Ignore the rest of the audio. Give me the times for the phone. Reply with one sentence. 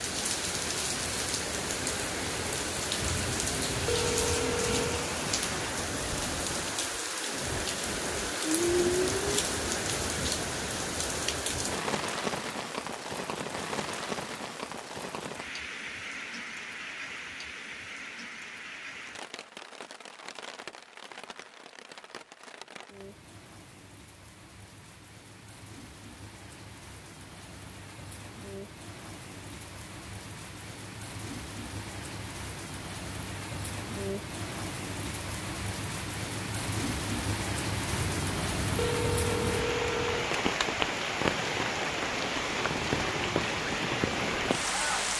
You can hear the phone from 3.0 to 5.2 s and from 37.9 to 40.4 s.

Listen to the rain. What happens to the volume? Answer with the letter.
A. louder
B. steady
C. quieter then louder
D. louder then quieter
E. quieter
C.